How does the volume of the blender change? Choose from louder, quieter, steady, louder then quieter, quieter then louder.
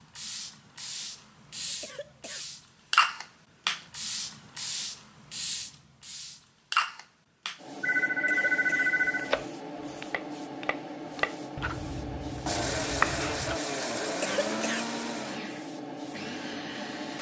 quieter.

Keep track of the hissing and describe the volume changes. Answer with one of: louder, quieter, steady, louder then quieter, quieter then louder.
quieter.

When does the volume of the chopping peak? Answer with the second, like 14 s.
13 s.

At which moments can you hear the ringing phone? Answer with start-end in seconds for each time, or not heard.
7.8-9.3.